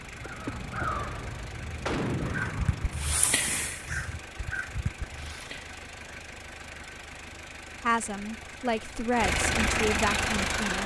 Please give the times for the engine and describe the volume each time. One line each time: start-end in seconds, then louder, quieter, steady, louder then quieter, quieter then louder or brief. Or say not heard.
0.0-10.8 louder.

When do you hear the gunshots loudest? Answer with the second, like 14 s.
2 s.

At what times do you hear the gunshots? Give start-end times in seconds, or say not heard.
1.9-3.6.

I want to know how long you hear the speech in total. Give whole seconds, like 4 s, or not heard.
3 s.